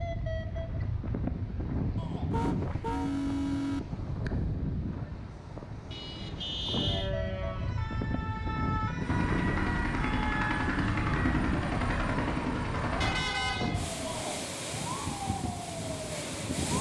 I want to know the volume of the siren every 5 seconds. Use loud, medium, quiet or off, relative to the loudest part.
off, loud, loud, loud.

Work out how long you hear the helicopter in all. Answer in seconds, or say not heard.
4 s.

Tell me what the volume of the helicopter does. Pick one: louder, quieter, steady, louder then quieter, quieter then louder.
steady.